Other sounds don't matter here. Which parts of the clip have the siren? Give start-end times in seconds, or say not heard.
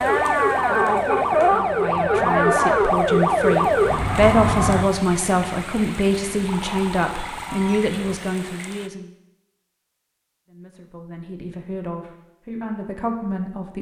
0.0-8.2.